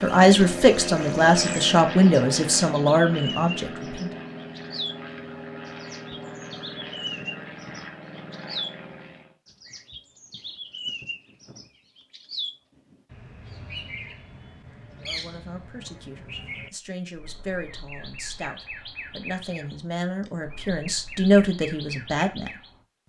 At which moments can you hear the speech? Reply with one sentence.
You can hear the speech from 0.0 to 4.1 s and from 15.0 to 22.5 s.